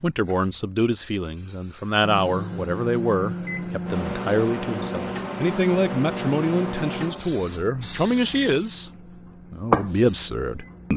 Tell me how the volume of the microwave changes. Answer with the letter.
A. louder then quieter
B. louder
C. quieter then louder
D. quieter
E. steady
D.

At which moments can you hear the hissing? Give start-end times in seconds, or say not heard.
0.0-10.9.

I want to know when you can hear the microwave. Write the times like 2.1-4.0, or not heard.
2.0-10.9.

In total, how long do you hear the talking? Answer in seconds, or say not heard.
10 s.